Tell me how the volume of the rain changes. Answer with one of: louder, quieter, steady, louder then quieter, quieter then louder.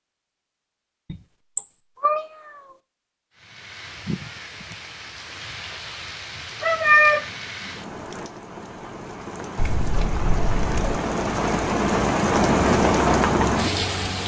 louder.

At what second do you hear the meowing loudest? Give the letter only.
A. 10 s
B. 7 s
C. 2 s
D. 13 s
B.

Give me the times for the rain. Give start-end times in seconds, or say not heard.
3.4-14.2.